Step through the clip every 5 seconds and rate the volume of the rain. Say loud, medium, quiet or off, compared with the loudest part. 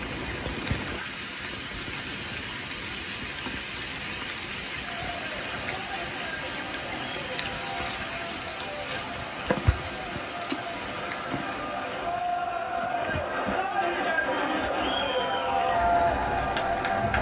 loud, loud, medium, medium.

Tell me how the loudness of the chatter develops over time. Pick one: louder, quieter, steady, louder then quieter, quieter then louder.
louder.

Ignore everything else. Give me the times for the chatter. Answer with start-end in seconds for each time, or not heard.
4.8-17.1.